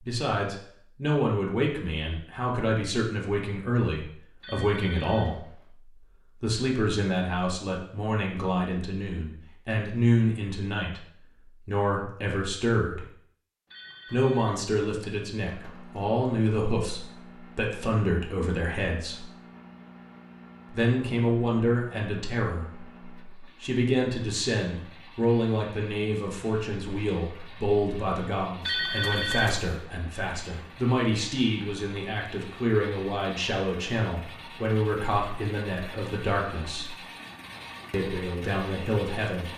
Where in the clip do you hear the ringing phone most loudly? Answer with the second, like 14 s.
29 s.